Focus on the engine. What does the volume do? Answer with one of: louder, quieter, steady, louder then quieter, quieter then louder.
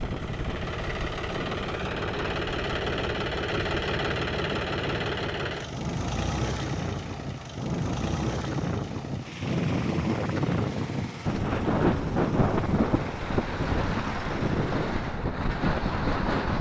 quieter.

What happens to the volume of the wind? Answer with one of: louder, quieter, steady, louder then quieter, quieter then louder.
louder.